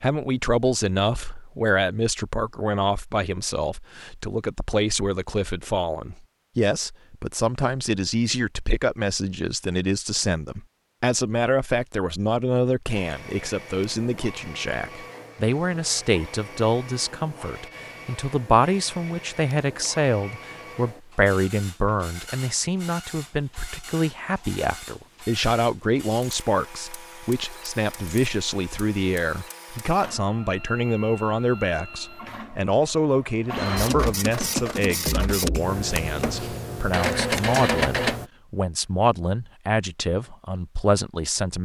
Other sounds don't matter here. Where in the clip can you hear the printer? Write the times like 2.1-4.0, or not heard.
12.8-38.3.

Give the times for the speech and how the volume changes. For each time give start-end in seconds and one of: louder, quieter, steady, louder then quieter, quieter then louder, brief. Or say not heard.
0.0-41.6 steady.